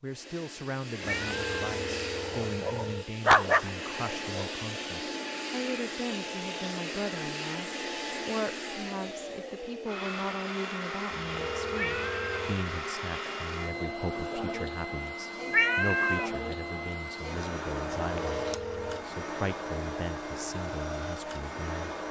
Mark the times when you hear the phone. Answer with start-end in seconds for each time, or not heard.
1.2-3.0, 11.2-12.6, 18.0-19.1.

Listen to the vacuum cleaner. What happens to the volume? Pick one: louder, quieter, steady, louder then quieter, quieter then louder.
steady.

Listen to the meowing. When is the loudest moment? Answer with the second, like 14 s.
16 s.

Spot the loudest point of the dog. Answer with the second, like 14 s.
3 s.